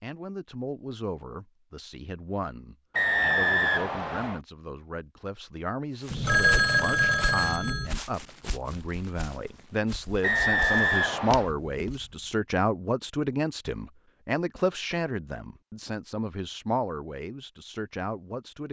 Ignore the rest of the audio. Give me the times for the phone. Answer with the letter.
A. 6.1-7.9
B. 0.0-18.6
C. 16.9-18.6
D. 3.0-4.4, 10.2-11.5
A.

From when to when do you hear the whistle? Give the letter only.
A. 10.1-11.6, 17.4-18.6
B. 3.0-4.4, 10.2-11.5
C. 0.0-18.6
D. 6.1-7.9
B.